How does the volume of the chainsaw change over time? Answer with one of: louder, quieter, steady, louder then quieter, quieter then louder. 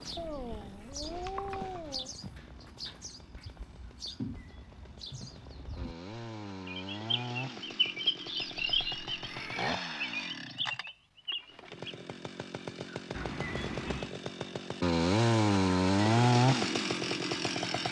louder.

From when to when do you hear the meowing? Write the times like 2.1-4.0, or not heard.
0.1-2.1, 9.2-9.8, 13.2-14.2.